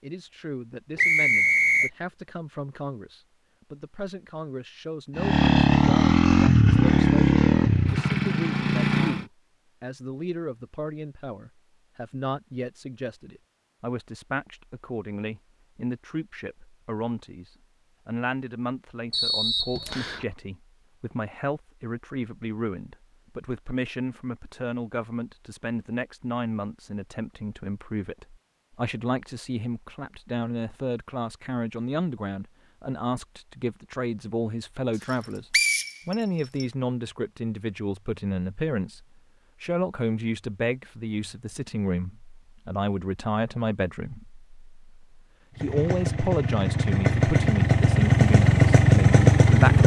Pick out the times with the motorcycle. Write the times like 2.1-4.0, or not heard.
5.2-9.2, 45.5-49.8.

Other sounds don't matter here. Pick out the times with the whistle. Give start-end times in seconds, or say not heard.
0.9-1.9, 19.1-20.2, 35.5-36.6.